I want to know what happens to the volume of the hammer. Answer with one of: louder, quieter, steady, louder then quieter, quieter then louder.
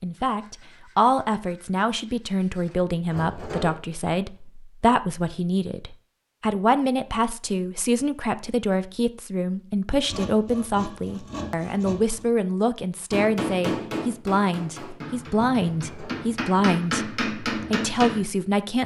quieter then louder.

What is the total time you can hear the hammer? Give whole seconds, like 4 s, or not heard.
5 s.